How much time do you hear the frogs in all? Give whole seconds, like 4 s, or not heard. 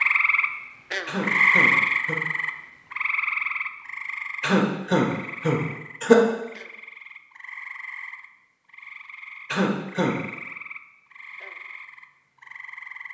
13 s.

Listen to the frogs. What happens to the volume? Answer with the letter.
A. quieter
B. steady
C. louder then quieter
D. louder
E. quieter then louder
A.